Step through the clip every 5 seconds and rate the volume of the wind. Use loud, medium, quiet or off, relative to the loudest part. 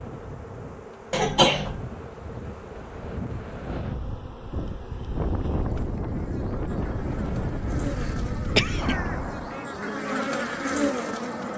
medium, loud, off.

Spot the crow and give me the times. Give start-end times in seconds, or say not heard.
8.8-11.5.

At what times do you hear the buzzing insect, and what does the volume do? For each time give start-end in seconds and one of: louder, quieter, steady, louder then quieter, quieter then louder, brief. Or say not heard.
0.0-11.5 louder.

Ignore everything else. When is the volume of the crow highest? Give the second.
9 s.